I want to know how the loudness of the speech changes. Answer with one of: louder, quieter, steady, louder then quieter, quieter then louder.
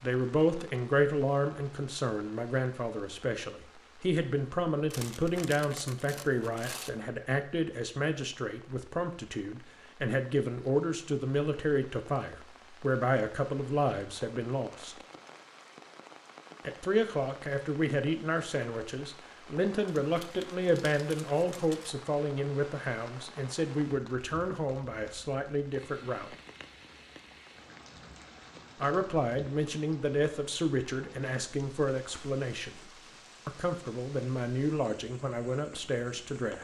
steady.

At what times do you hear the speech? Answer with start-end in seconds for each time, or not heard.
0.0-14.9, 16.6-26.3, 28.8-32.8, 33.5-36.6.